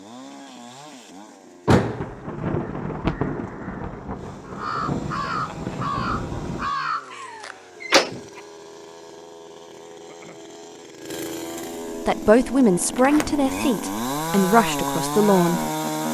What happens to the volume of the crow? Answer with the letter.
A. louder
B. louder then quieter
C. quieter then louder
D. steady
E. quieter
A.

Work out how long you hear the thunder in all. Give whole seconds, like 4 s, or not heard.
5 s.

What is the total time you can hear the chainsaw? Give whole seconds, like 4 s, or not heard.
16 s.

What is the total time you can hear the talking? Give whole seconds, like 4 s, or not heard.
4 s.